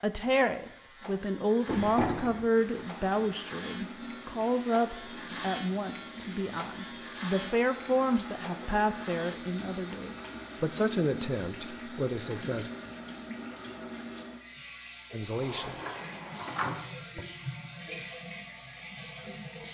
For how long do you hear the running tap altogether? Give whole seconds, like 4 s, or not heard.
17 s.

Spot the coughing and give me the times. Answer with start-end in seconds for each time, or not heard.
not heard.